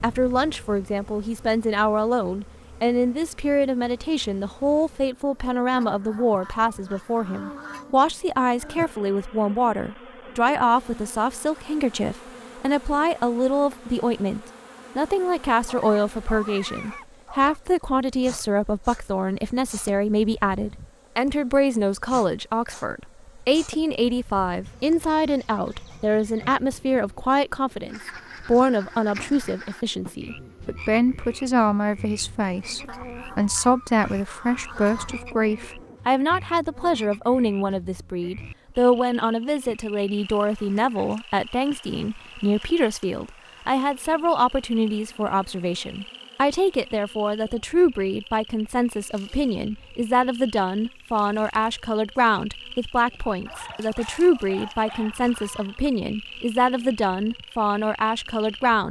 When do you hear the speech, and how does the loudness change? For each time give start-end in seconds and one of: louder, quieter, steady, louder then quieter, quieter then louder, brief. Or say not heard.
0.0-58.8 steady.